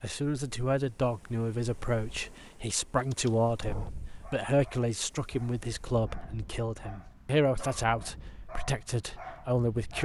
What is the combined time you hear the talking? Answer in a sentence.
The talking can be heard for 10 seconds in total.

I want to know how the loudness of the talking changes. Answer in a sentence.
The loudness of the talking stays about the same.